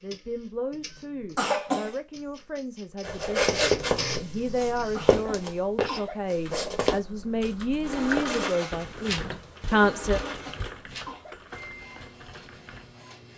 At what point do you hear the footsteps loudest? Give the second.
4 s.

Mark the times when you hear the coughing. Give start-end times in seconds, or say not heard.
1.4-1.9, 4.9-6.2, 10.2-11.3.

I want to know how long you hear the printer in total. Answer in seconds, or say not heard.
11 s.